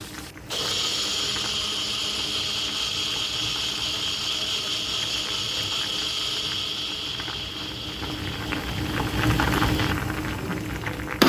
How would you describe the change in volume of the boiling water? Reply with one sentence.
The loudness of the boiling water goes up.